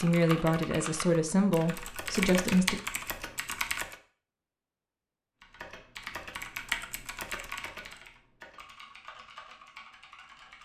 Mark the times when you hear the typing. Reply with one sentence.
The typing can be heard from 0.0 to 4.0 s and from 5.4 to 10.6 s.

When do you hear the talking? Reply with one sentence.
You can hear the talking from 0.0 to 2.8 s.